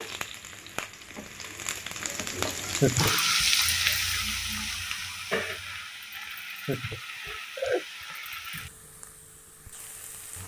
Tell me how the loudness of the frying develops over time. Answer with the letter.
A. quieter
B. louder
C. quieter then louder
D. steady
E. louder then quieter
E.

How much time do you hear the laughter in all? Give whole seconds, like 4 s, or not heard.
3 s.